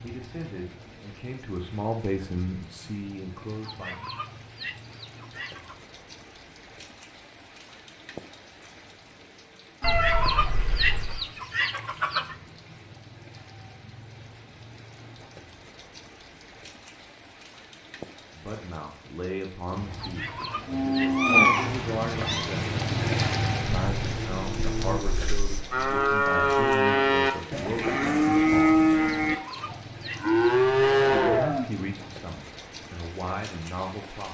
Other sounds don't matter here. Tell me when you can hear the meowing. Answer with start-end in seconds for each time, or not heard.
9.8-11.2, 21.1-22.4.